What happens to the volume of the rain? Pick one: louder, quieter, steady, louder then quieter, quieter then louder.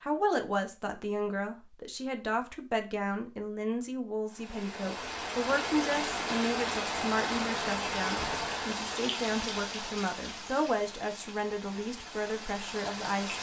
quieter.